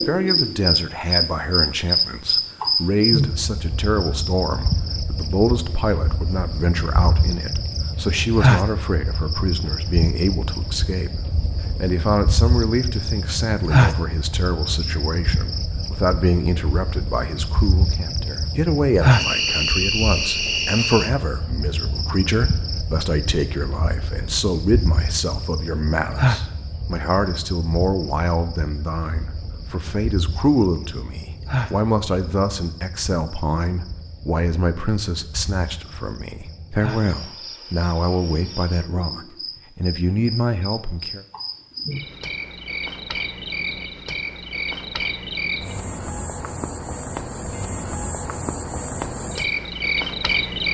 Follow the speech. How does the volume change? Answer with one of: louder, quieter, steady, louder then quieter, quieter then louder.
steady.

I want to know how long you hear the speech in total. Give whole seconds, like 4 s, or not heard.
41 s.